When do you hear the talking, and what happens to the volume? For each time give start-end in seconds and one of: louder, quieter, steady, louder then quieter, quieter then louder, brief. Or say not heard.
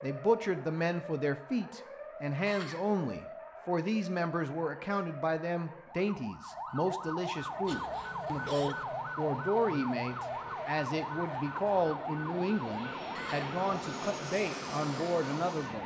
0.0-15.8 steady.